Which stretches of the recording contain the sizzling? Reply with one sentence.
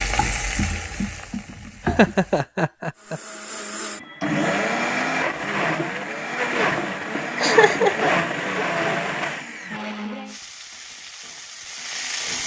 The sizzling can be heard from 0.0 to 2.5 s and from 10.2 to 12.4 s.